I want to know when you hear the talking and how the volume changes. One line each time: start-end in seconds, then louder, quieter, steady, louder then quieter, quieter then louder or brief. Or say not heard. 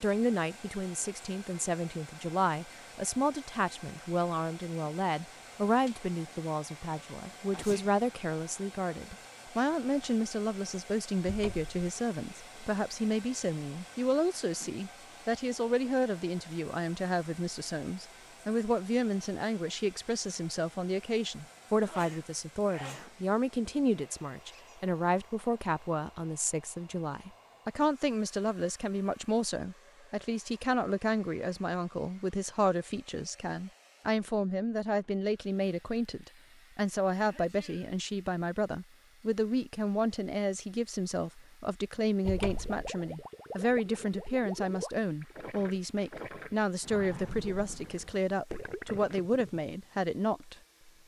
0.0-50.5 steady.